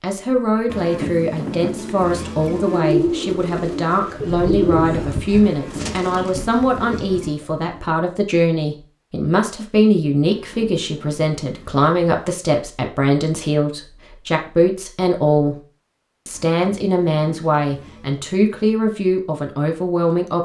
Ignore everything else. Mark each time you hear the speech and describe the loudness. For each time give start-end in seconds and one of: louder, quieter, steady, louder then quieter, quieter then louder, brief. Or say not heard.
0.0-15.6 steady
16.2-20.4 steady.